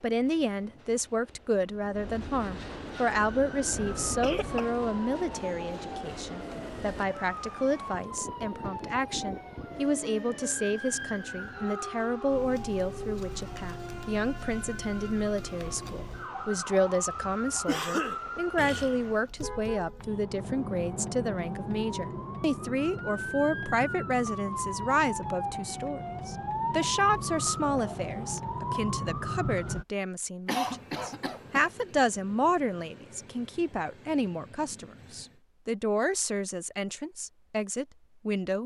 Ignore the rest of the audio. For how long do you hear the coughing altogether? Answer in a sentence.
The coughing can be heard for 4 seconds in total.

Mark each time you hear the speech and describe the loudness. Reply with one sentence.
The speech can be heard from 0.0 to 38.6 s, at a steady volume.